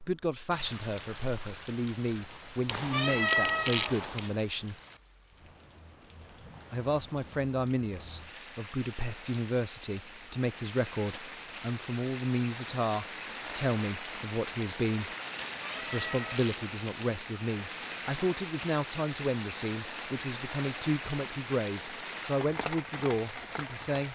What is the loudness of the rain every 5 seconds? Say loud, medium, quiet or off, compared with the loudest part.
medium, medium, loud, loud, loud.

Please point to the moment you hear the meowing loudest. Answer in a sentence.
The volume of the meowing peaks at 3 seconds.